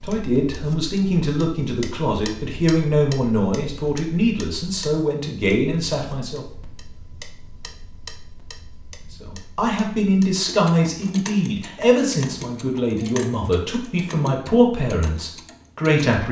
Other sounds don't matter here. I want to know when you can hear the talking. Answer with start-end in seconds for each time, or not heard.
0.0-6.5, 9.2-16.2.